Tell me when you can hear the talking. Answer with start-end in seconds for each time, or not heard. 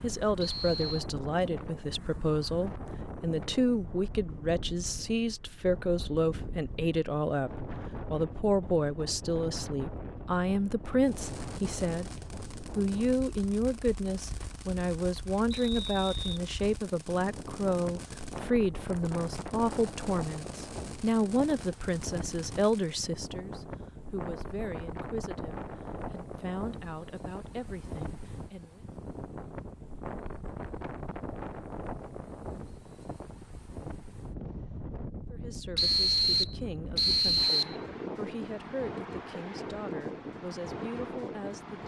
0.0-12.1, 12.8-28.8, 35.3-41.8.